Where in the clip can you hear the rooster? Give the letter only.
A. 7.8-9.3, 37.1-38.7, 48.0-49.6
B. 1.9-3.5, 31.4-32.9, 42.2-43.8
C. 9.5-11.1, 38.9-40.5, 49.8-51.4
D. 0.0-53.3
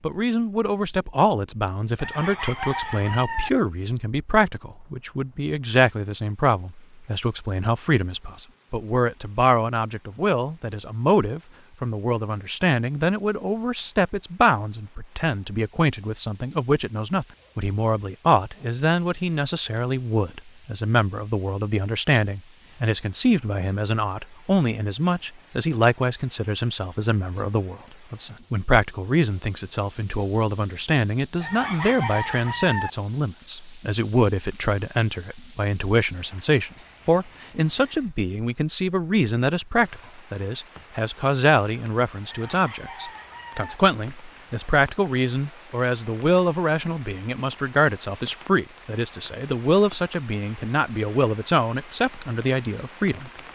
B.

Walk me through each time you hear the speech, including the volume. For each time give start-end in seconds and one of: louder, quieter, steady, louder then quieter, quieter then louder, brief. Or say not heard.
0.0-53.3 steady.